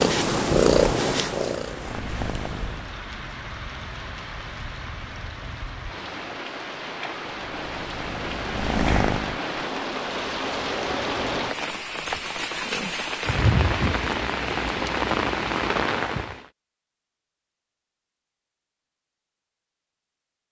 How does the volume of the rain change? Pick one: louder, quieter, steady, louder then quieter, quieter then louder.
louder.